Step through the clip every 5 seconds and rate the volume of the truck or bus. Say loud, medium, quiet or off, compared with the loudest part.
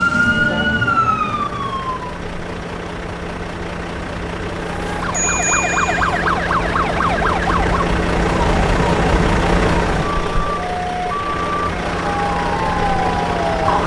medium, loud, loud.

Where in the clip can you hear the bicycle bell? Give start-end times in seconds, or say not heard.
5.1-6.2.